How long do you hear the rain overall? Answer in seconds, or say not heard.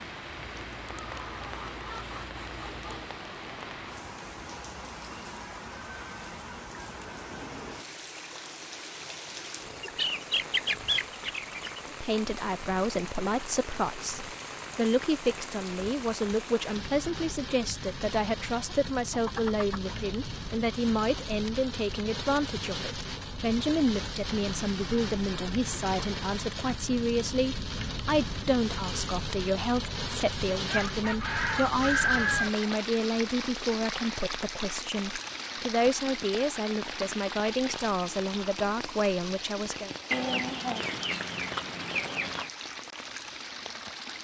44 s.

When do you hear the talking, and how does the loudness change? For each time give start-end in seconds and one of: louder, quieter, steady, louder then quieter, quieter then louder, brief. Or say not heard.
11.8-40.0 steady.